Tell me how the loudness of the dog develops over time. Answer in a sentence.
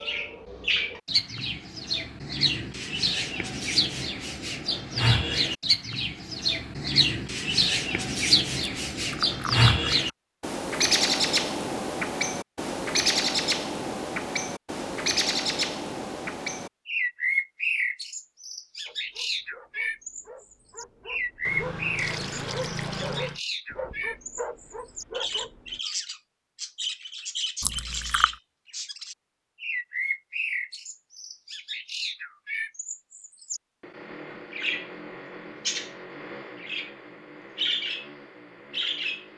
The volume of the dog goes up.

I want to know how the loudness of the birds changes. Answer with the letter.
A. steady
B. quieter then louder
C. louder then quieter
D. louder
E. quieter
E.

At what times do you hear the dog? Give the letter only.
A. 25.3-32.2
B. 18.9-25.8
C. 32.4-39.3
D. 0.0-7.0
B.